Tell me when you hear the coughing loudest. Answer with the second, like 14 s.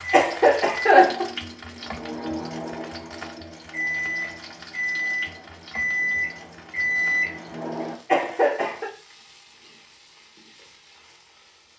1 s.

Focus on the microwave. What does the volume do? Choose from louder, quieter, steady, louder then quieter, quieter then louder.
louder.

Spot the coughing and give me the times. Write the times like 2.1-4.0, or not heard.
0.1-1.3, 8.1-8.9.